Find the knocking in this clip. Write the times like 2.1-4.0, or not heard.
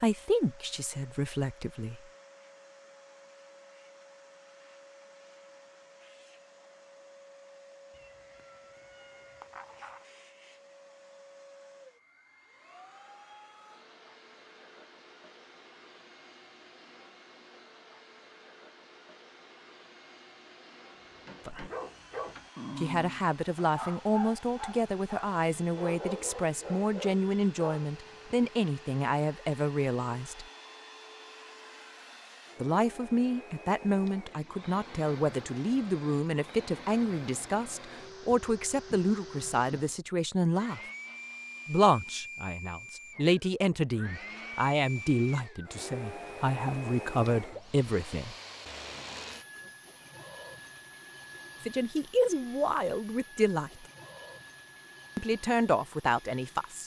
not heard.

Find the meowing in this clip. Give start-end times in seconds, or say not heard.
7.9-10.1.